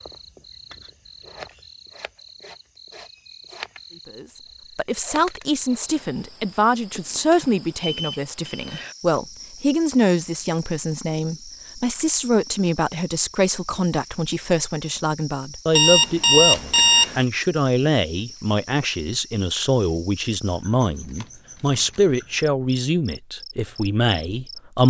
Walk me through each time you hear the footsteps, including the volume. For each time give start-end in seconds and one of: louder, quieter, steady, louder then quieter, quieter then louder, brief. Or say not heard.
not heard.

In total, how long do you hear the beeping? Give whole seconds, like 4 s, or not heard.
3 s.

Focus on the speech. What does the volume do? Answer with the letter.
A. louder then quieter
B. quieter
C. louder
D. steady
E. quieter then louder
D.